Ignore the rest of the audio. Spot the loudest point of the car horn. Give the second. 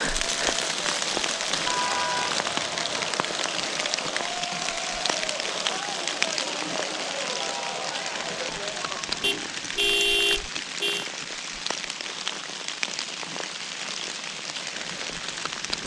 10 s.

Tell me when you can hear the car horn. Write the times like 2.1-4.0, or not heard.
1.6-3.1, 9.2-11.1.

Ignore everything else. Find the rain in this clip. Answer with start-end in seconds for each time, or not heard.
0.0-15.8.